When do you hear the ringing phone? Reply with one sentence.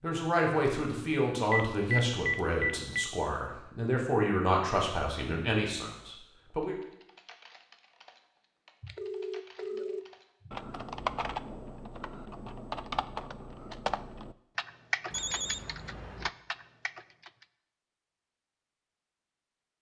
The ringing phone can be heard from 1.5 to 3.0 s, from 8.8 to 10.6 s and from 15.1 to 16.3 s.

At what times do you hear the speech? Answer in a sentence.
You can hear the speech from 0.0 to 6.8 s.